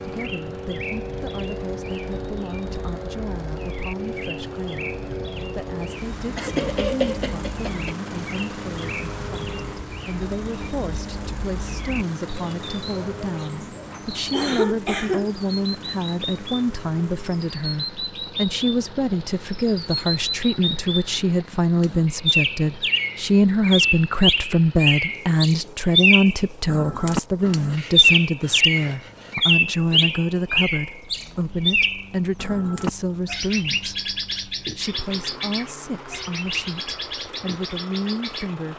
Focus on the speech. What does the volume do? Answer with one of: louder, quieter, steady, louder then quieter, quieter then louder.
louder then quieter.